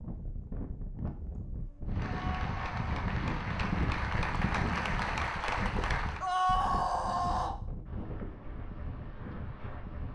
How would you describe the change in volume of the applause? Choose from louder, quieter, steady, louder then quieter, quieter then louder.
louder.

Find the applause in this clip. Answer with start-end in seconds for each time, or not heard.
1.9-6.3.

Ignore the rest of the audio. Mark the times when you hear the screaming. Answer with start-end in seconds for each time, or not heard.
2.0-2.8, 6.2-7.5.